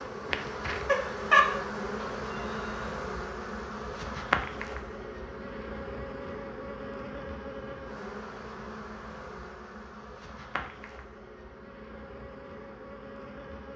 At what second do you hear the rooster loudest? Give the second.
1 s.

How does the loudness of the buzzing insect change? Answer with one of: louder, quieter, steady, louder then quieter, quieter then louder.
quieter.